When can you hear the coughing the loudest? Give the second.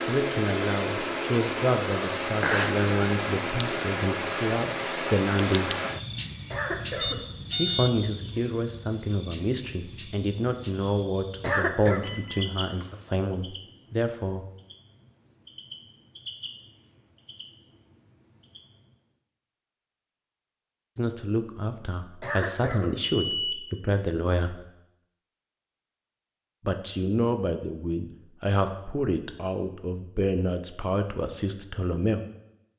12 s.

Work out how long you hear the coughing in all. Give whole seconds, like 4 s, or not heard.
2 s.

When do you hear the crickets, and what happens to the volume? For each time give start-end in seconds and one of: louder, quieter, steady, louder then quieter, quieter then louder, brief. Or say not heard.
0.0-18.9 quieter.